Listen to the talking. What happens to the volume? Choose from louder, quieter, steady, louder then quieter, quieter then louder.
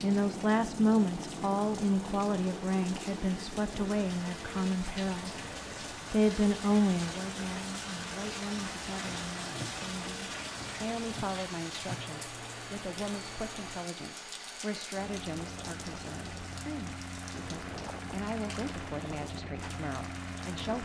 quieter.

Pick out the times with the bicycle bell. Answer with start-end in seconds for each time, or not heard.
not heard.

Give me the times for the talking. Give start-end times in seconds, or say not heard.
0.0-5.3, 6.1-20.8.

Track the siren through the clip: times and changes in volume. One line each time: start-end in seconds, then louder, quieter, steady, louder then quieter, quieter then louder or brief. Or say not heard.
not heard.